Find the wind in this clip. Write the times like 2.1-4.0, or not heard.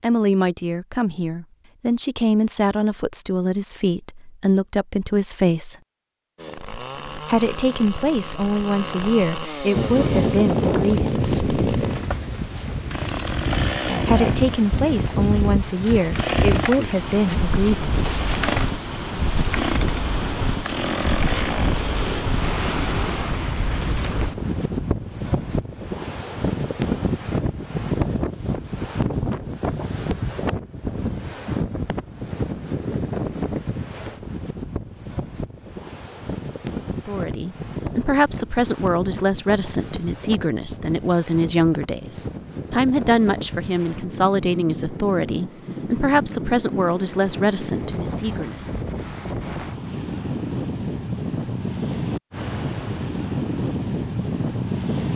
9.7-55.1.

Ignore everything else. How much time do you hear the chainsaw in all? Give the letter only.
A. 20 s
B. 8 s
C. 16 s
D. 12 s
C.